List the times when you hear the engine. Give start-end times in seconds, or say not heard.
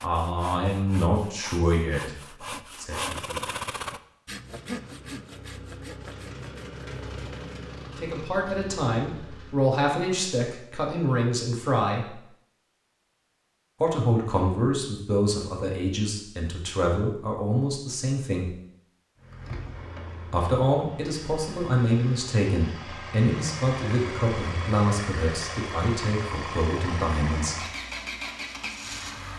4.3-9.7, 19.1-29.3.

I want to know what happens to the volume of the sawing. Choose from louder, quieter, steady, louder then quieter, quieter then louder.
louder then quieter.